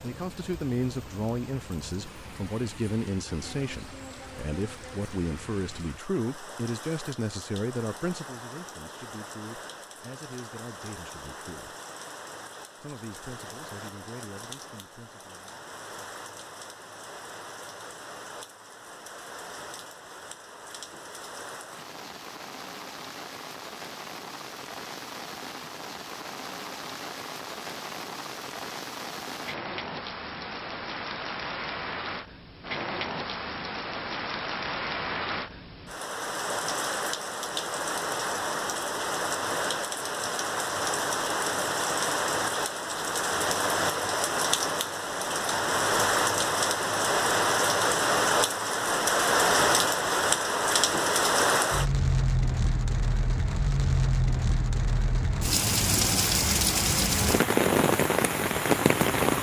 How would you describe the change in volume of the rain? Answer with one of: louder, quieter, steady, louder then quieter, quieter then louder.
louder.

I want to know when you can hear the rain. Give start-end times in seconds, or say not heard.
0.0-59.3.